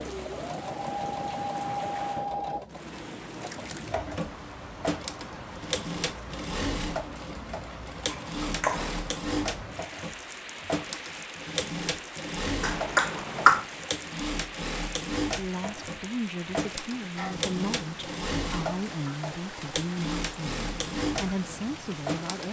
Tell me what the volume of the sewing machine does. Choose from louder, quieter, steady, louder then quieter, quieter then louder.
steady.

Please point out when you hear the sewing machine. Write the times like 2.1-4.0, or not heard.
0.0-22.4.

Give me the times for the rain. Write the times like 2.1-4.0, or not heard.
0.0-22.4.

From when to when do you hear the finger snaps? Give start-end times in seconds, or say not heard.
8.1-9.0, 12.6-13.7.